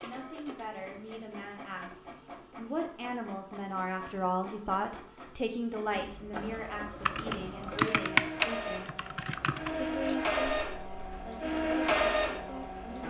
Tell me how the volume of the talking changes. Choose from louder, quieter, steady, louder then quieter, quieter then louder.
louder then quieter.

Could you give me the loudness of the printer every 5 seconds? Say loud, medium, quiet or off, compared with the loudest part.
quiet, medium, loud.